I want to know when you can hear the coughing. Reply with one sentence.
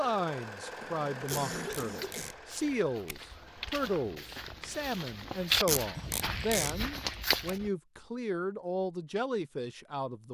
You can hear the coughing from 0.8 to 2.3 s and from 5.9 to 6.9 s.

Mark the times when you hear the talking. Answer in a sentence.
You can hear the talking from 0.0 to 10.3 s.